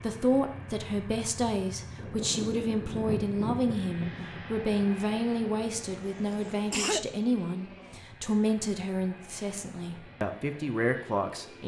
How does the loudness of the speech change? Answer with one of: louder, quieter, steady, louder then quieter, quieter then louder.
steady.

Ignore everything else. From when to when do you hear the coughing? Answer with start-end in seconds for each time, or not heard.
5.9-7.0.